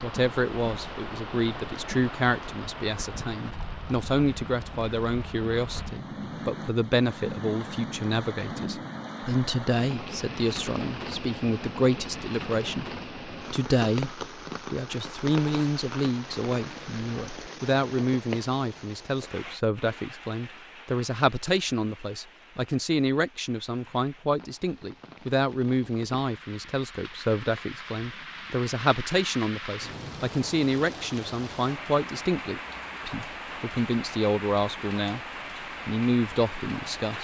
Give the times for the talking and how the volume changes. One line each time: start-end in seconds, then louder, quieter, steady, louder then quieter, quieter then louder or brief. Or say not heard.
0.0-35.2 steady
35.9-37.1 brief.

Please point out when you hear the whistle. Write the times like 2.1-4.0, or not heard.
not heard.